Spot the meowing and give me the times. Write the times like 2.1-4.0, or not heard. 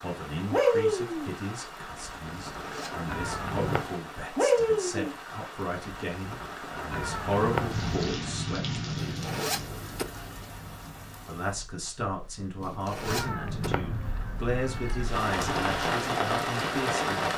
3.0-3.9, 6.9-8.0, 13.1-15.1.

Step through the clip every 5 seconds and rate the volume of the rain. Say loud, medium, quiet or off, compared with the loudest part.
loud, medium, quiet, loud.